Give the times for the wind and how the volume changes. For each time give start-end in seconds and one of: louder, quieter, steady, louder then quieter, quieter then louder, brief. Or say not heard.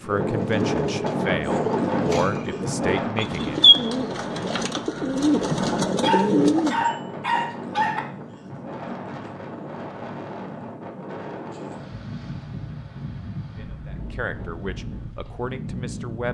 0.0-16.2 quieter.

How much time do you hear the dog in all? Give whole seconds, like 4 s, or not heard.
2 s.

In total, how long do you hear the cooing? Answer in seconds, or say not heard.
7 s.